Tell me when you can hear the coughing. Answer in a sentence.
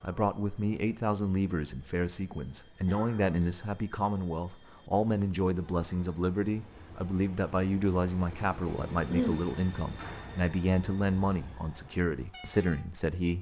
You can hear the coughing from 2.9 to 3.4 s and from 8.7 to 9.4 s.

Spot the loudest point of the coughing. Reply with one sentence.
The loudest moment of the coughing is at 9 seconds.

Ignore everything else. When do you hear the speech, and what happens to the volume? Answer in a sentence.
The speech can be heard from 0.0 to 13.3 s, at a steady volume.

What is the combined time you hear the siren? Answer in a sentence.
You can't hear the siren here.